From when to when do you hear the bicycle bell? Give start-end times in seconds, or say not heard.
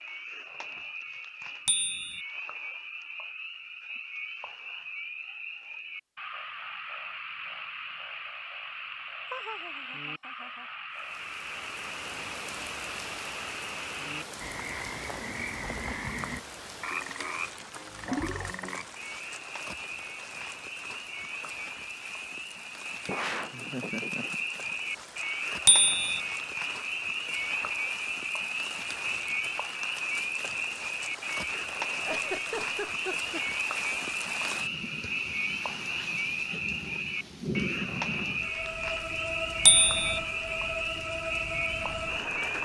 1.6-2.2, 25.6-26.2, 39.6-40.2.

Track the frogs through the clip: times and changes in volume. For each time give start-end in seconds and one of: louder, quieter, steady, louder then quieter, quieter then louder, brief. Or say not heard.
0.0-42.6 louder.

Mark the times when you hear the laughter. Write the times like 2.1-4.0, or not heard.
9.3-10.7, 23.1-24.8, 31.9-33.4.